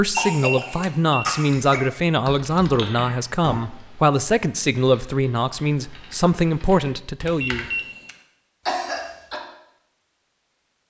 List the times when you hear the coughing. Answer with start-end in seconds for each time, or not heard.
0.1-1.9, 8.7-9.4.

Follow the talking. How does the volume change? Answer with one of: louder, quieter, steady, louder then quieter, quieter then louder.
steady.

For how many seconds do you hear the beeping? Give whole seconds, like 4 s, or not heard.
2 s.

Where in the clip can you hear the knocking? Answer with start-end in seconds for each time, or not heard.
not heard.